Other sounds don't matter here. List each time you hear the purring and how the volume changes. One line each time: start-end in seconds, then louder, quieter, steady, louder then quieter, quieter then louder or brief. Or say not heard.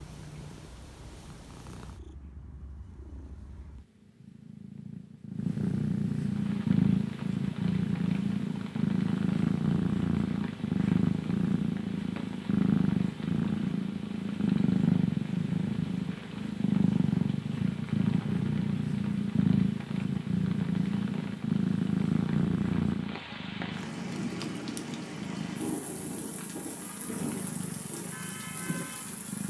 0.0-29.4 louder then quieter.